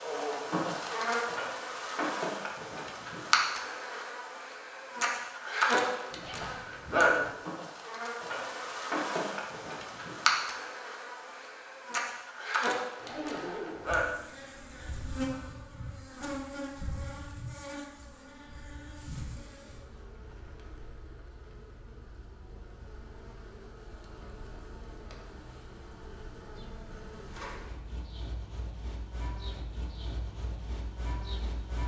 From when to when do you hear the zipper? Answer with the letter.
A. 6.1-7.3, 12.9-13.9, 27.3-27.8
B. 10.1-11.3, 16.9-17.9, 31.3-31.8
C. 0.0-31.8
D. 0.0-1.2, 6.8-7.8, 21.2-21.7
A.